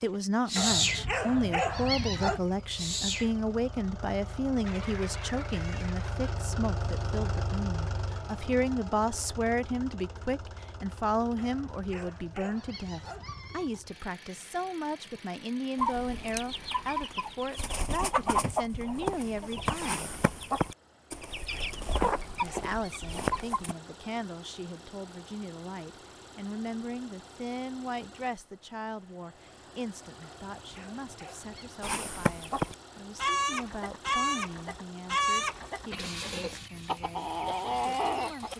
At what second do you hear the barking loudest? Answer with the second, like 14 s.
2 s.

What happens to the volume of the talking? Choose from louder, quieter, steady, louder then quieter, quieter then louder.
quieter.